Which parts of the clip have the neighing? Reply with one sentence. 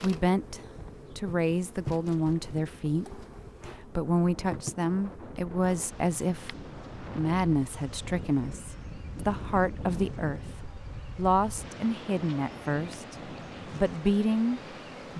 The neighing can't be heard in this clip.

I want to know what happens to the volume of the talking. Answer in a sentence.
The volume of the talking stays about the same.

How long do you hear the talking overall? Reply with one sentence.
You can hear the talking for 15 seconds altogether.